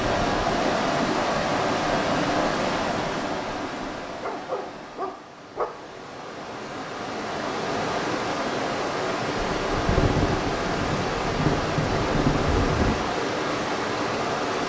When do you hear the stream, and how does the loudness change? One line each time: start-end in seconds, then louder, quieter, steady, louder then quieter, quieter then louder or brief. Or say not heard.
0.0-14.6 quieter then louder.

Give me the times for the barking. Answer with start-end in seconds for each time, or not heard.
4.2-5.7.